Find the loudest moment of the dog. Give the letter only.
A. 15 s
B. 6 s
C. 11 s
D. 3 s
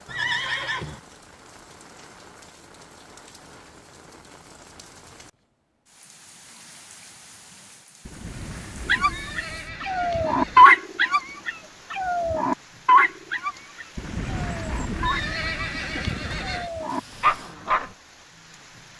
C.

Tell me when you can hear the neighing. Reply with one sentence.
You can hear the neighing from 0.1 to 1.0 s, from 8.1 to 10.8 s and from 13.9 to 16.7 s.